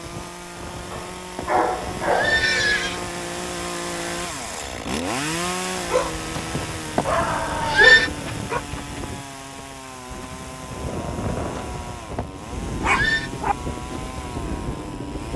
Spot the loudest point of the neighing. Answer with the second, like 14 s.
8 s.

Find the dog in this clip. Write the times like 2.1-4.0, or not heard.
0.9-2.5, 5.8-8.6, 12.8-13.6.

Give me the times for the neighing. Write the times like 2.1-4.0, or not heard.
0.8-3.0, 6.3-8.1, 11.6-13.3.